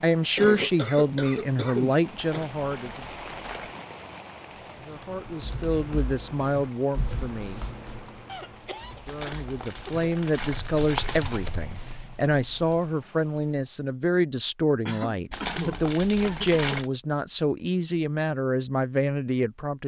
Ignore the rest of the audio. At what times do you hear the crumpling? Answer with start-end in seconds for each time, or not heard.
2.1-3.8, 9.1-11.5, 15.3-16.9.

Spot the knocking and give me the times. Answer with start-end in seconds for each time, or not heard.
not heard.